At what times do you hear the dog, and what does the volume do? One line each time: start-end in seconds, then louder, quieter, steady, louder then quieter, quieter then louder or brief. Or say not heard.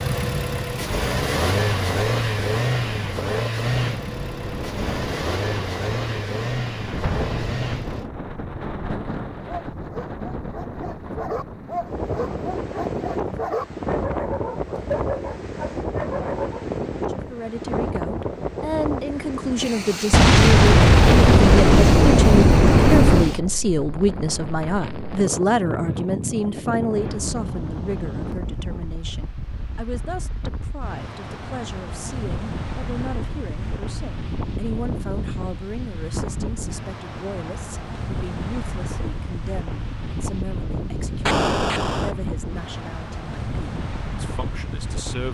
9.4-16.6 louder.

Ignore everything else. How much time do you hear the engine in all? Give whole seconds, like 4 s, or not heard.
8 s.